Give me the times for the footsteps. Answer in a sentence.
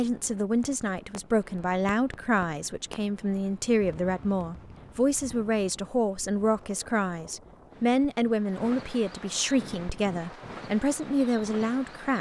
The footsteps can't be heard in this clip.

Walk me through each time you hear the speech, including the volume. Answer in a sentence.
The speech can be heard from 0.0 to 12.1 s, at a steady volume.